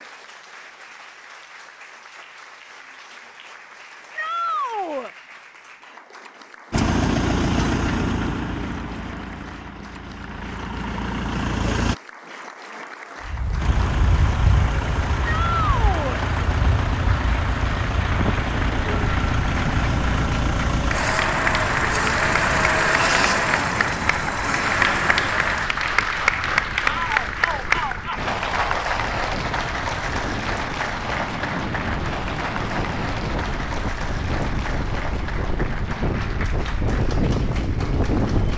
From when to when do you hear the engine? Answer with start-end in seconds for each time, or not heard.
6.7-11.9, 13.6-25.7.